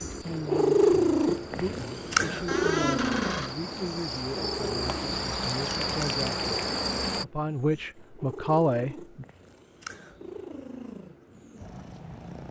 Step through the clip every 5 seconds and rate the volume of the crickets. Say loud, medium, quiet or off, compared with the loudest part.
medium, loud, off.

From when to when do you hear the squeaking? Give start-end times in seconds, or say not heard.
2.5-3.5.